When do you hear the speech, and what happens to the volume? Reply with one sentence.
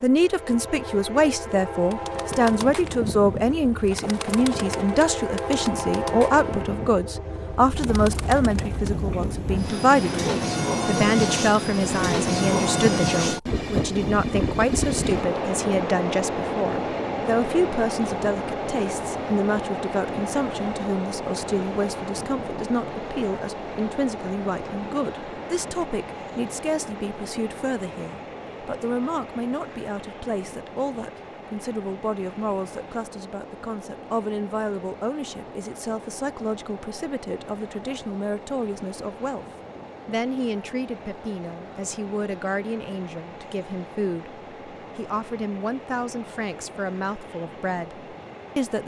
The speech can be heard from 0.0 to 39.5 s, getting quieter; and from 40.0 to 48.8 s, at a steady volume.